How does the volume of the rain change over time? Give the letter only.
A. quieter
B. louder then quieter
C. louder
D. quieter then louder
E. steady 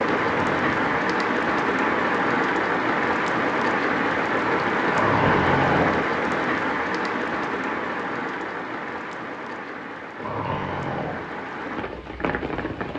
A.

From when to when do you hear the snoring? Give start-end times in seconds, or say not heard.
0.2-1.1, 4.9-6.1, 10.2-11.3.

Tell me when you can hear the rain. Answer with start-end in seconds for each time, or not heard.
0.0-12.9.